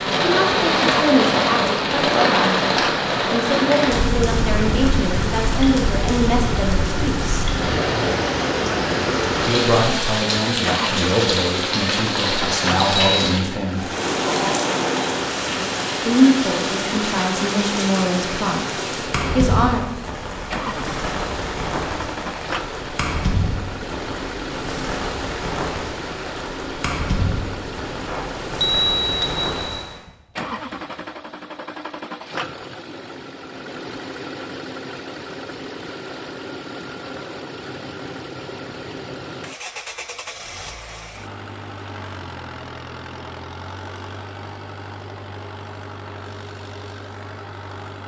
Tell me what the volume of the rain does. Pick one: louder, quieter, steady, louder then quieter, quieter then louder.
quieter.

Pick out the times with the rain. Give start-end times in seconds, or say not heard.
0.0-30.0.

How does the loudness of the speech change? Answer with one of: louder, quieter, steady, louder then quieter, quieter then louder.
steady.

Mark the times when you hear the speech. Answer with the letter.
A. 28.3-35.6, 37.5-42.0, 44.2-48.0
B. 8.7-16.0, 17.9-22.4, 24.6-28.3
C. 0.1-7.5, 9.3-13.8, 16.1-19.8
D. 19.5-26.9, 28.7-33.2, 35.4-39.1
C.